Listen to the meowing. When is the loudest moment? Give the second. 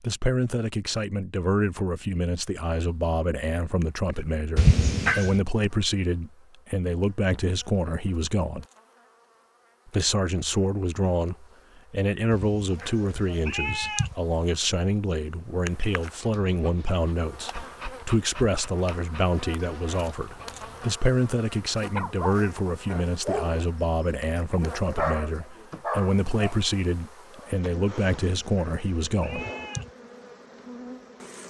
5 s.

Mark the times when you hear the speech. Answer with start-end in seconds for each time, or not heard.
0.0-8.7, 9.8-29.4.